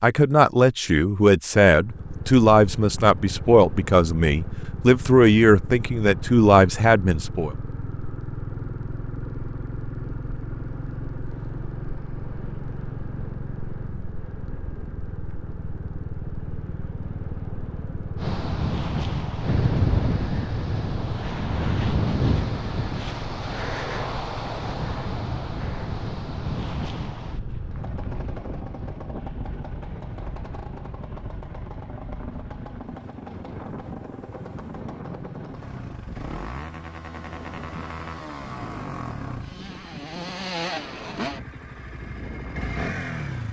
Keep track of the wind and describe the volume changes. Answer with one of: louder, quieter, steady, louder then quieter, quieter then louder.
quieter.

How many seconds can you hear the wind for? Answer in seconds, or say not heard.
25 s.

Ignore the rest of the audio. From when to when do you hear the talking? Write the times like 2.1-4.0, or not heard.
0.0-7.5.